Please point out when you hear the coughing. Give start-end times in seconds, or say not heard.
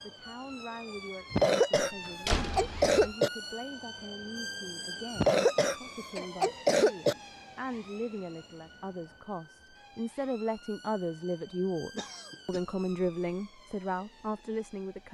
1.3-3.3, 5.2-7.2, 11.9-12.6.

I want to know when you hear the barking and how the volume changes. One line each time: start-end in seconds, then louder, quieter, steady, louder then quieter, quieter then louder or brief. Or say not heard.
not heard.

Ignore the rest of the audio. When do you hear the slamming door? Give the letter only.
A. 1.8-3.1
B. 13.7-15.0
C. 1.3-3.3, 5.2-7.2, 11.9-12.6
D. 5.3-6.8
A.